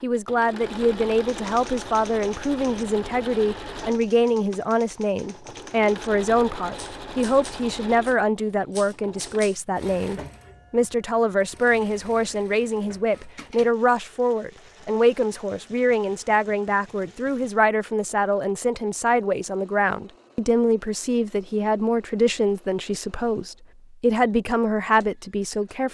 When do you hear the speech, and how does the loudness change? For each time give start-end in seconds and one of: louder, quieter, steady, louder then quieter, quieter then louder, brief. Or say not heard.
0.0-25.8 steady.